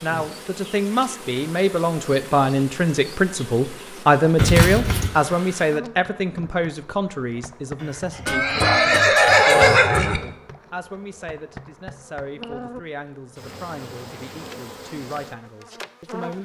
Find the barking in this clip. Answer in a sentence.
You can hear the barking from 7.8 to 9.6 s.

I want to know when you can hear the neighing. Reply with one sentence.
You can hear the neighing from 4.3 to 5.1 s and from 8.2 to 10.2 s.